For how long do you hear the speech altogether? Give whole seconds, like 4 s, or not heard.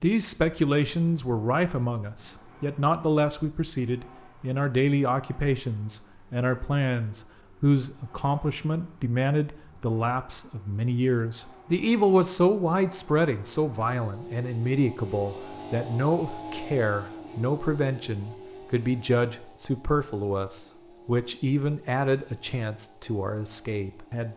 24 s.